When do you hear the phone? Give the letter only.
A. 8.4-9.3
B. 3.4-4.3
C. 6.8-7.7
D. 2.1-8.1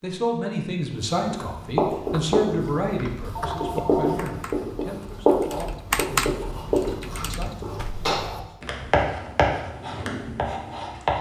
B.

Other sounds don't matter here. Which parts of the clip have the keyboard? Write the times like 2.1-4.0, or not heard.
2.1-8.1.